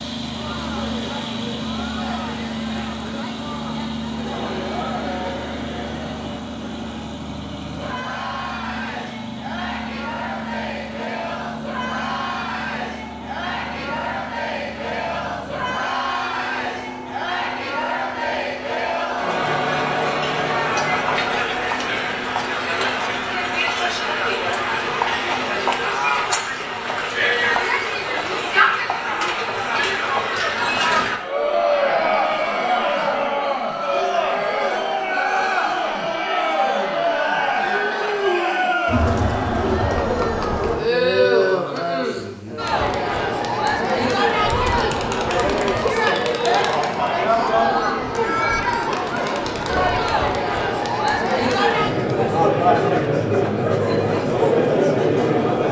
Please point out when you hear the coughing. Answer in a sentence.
The coughing can't be heard in this clip.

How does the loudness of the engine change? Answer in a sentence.
The volume of the engine goes down.